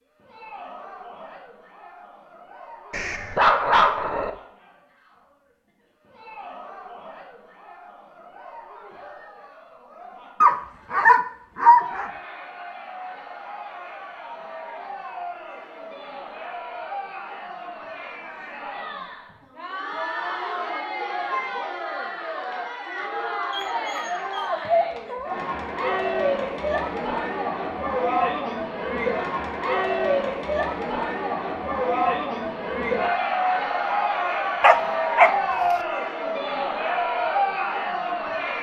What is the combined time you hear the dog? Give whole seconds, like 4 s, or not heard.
6 s.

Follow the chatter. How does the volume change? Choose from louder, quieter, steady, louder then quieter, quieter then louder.
louder.